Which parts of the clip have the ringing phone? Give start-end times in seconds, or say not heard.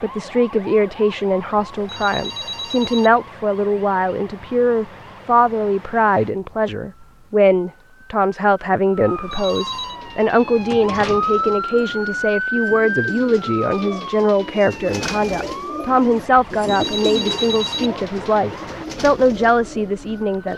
1.8-3.1, 9.1-10.0, 16.6-17.9.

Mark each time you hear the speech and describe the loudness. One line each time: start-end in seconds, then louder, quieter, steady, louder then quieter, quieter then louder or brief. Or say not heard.
0.0-20.5 steady.